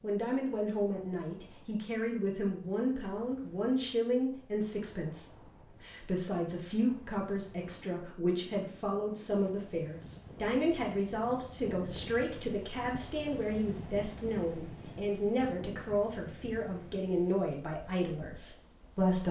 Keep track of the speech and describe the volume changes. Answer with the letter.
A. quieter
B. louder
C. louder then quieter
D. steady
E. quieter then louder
D.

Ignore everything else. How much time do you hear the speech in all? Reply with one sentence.
The speech can be heard for 19 seconds in total.